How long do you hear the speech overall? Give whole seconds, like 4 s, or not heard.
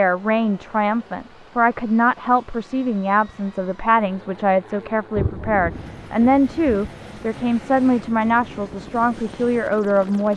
10 s.